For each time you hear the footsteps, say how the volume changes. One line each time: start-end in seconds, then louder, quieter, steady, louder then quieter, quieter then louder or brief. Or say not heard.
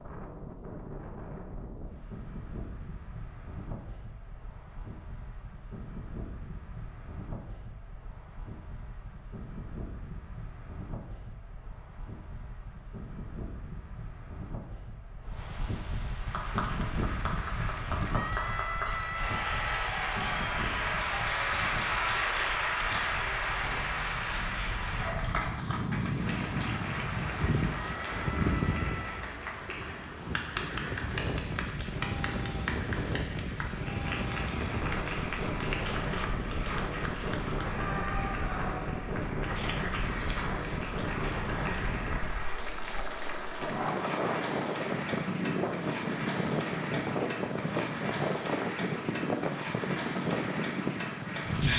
not heard.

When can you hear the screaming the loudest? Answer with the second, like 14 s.
19 s.